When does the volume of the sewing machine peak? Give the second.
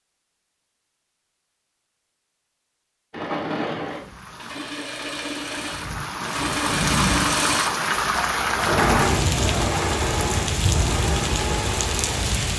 9 s.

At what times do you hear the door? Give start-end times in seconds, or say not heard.
not heard.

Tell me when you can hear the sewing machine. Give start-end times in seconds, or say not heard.
3.1-12.5.